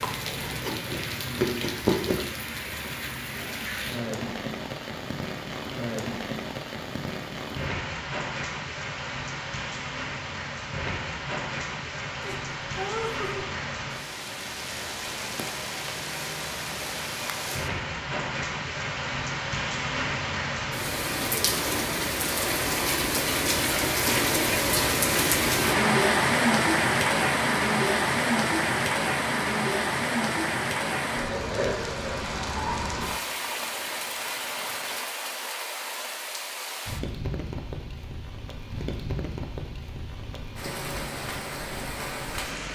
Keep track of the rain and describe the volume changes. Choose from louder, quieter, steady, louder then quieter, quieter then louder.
louder then quieter.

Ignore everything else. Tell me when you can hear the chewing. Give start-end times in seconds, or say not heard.
0.0-2.2.